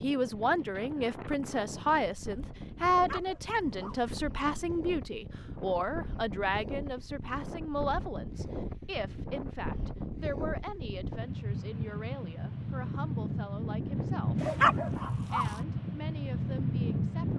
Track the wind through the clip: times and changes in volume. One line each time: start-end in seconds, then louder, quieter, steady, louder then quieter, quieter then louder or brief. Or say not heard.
0.0-17.3 louder.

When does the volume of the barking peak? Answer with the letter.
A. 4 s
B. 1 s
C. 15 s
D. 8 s
C.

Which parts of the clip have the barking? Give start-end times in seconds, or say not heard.
2.9-4.1, 14.3-15.6.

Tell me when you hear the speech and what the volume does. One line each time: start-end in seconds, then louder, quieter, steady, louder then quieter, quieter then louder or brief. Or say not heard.
0.0-14.4 quieter
15.2-17.3 brief.